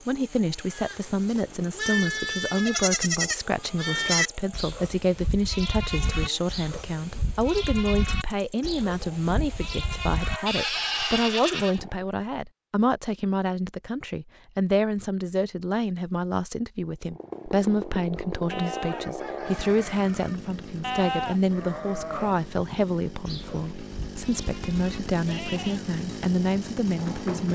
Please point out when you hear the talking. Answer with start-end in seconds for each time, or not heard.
0.1-27.5.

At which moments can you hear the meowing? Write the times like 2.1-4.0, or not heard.
not heard.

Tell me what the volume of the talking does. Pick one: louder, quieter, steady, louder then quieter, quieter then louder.
steady.